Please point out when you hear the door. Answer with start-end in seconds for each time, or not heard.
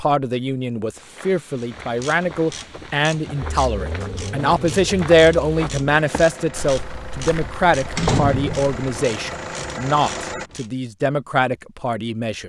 8.0-8.8.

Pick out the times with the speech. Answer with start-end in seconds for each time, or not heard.
0.0-12.4.